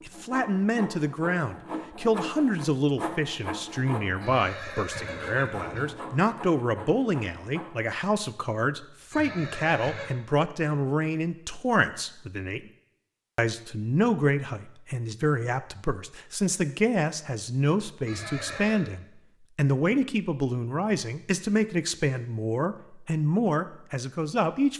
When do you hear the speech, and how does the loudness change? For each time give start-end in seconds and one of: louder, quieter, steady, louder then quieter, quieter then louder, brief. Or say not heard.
0.1-12.7 steady
13.3-24.7 steady.